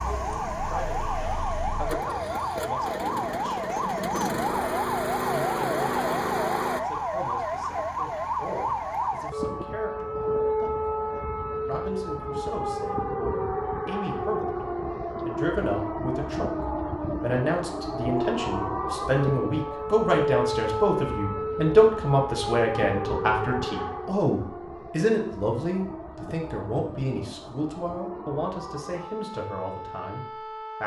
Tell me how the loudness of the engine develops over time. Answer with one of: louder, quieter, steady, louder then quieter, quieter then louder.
louder.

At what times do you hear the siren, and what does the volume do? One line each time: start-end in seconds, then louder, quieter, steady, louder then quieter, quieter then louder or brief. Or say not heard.
0.0-30.8 quieter.